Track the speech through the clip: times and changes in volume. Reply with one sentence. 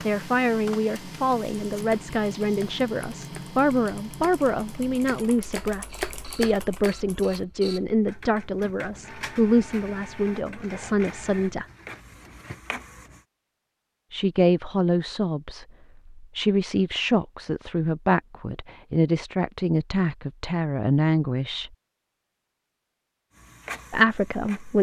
You can hear the speech from 0.1 to 11.7 s, at a steady volume; from 14.1 to 21.7 s, at a steady volume; and briefly from 23.9 to 24.7 s.